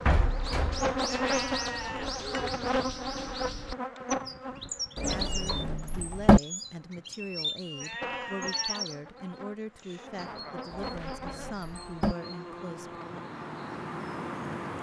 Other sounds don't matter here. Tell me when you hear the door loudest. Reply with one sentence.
The loudest moment of the door is at 6 seconds.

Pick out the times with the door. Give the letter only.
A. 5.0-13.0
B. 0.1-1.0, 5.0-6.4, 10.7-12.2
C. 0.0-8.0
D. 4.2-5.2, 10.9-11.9
B.